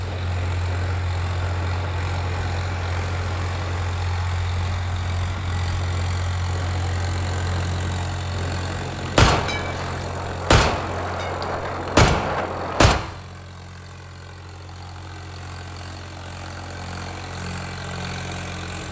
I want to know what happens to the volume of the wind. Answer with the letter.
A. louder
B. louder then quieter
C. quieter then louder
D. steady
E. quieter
A.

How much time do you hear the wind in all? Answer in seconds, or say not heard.
13 s.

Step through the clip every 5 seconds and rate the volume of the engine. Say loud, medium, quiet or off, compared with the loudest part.
loud, loud, medium, loud.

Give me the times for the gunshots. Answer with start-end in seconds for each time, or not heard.
9.1-12.9.